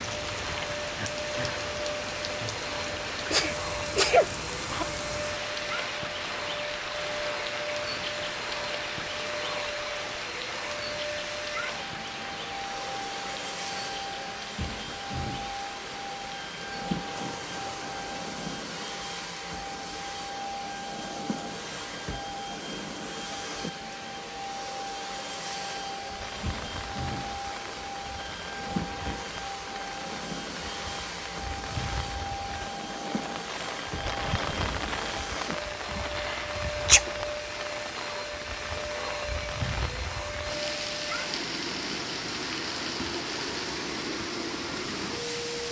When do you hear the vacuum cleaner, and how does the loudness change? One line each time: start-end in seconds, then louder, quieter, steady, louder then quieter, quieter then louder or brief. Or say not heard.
0.0-45.6 steady.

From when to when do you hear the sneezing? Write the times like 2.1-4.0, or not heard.
2.9-4.8, 36.0-37.1.